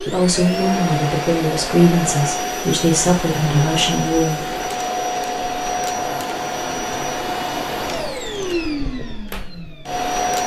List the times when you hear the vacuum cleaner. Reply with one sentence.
You can hear the vacuum cleaner from 0.0 to 10.4 s.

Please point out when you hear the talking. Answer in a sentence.
The talking can be heard from 0.0 to 4.5 s.